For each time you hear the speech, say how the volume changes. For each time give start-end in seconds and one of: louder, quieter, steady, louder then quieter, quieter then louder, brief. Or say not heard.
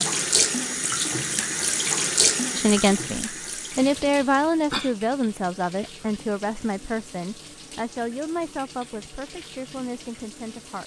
2.5-10.8 quieter.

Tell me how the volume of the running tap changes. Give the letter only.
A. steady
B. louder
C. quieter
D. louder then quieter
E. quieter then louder
C.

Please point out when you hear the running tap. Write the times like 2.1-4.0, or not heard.
0.0-10.8.